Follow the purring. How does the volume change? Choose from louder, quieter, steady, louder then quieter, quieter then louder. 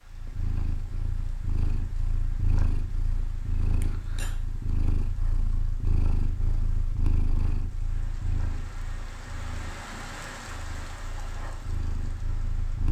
quieter.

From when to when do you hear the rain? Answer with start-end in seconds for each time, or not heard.
0.0-12.8.